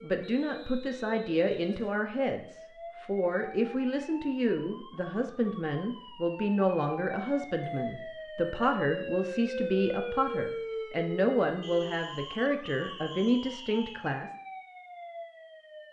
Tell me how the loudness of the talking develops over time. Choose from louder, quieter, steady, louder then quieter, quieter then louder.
steady.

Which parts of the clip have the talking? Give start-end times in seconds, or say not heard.
0.0-14.3.